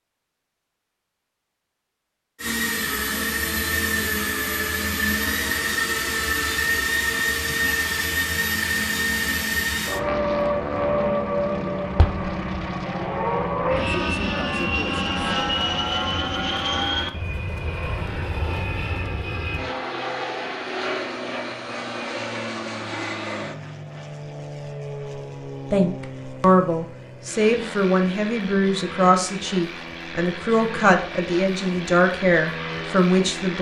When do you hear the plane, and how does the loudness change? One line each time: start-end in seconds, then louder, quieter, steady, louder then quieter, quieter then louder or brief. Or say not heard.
2.4-33.5 quieter.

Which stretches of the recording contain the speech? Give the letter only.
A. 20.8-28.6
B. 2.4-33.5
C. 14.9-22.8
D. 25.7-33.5
D.